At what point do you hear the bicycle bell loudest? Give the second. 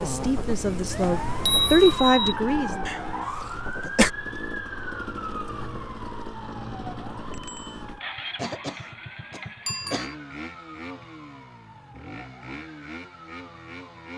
2 s.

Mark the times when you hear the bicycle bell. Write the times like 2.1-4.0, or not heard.
1.0-2.4, 7.3-7.8, 9.7-10.2.